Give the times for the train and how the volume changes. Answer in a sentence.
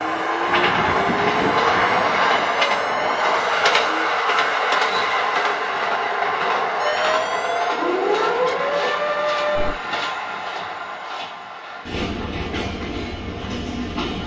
You can hear the train from 0.0 to 14.2 s, getting quieter.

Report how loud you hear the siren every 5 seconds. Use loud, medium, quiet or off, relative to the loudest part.
medium, loud, off.